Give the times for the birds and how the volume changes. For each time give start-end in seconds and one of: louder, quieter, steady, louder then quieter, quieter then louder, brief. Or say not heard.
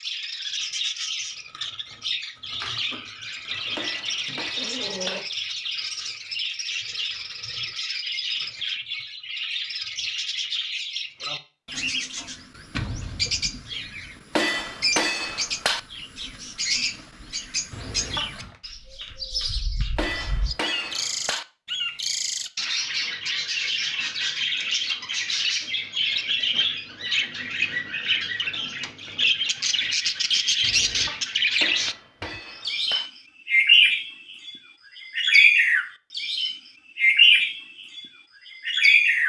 0.0-38.0 louder
38.6-39.2 brief.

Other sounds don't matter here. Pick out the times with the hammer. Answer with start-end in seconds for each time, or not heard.
3.8-5.2, 14.3-15.8, 19.9-21.4, 31.6-33.1.